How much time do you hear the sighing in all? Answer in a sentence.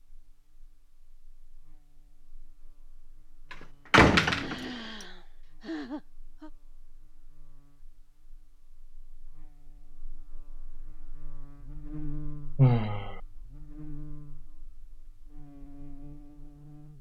The sighing can be heard for 3 seconds in total.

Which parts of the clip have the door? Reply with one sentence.
The door can be heard from 3.5 to 4.7 s.